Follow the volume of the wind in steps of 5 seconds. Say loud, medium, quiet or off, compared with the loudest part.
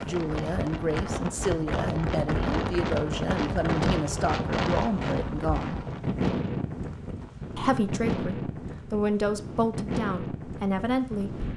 loud, loud, medium.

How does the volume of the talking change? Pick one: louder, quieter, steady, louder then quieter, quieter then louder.
steady.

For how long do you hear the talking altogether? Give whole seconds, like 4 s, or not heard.
10 s.